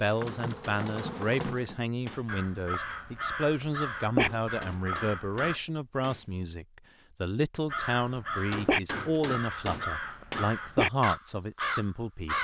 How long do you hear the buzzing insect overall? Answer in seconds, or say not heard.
2 s.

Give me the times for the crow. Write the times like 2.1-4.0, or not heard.
2.2-5.5, 7.7-12.3.